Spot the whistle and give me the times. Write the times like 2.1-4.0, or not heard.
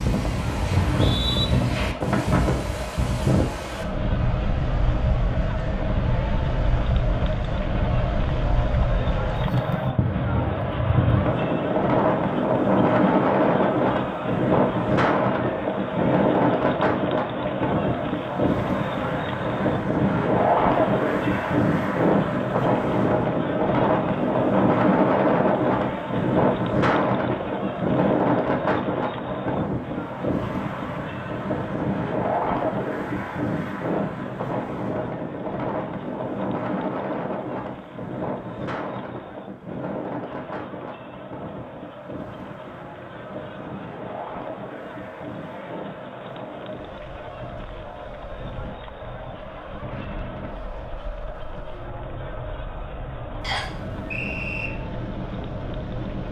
0.7-1.4, 53.4-54.7.